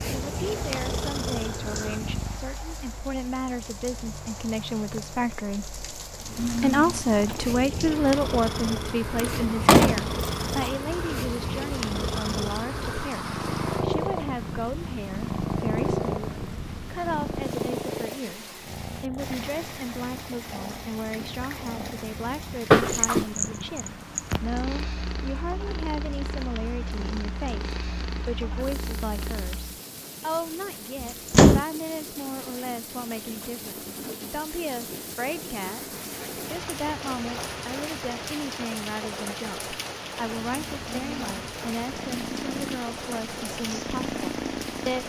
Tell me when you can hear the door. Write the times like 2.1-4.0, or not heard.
9.3-10.7, 22.7-23.2, 31.0-31.6.